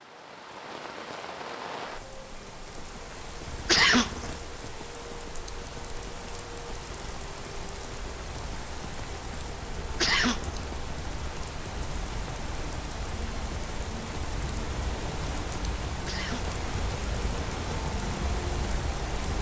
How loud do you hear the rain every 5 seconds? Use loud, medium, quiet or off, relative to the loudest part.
medium, medium, loud, loud.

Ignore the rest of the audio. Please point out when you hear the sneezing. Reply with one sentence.
The sneezing can be heard from 3.5 to 4.3 s, from 9.8 to 10.7 s and from 15.8 to 16.6 s.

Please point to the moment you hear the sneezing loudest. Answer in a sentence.
The loudest moment of the sneezing is at 4 seconds.